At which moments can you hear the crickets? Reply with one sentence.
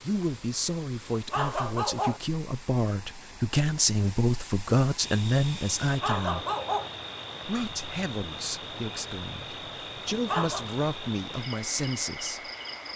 The crickets can be heard from 5.0 to 12.9 s.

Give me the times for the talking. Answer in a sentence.
You can hear the talking from 0.0 to 6.5 s and from 7.5 to 12.5 s.